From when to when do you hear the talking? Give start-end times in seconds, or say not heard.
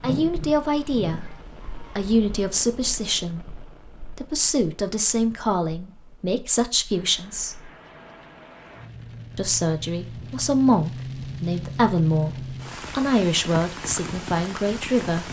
0.0-1.2, 1.9-7.7, 9.3-15.2.